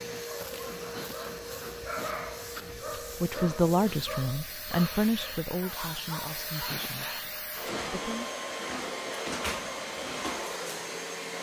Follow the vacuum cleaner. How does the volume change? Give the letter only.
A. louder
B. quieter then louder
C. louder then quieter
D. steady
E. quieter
A.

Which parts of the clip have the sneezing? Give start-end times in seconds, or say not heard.
0.9-2.5, 6.7-8.1.